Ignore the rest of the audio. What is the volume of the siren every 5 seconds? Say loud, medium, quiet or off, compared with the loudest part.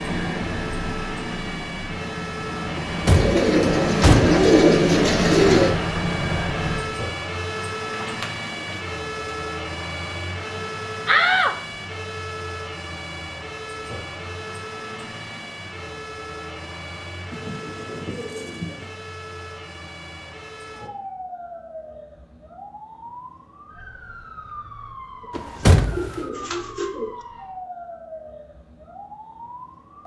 loud, loud, loud, medium, medium, medium.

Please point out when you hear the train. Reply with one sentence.
The train can be heard from 0.0 to 7.0 s.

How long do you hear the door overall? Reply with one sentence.
The door can be heard for 3 seconds in total.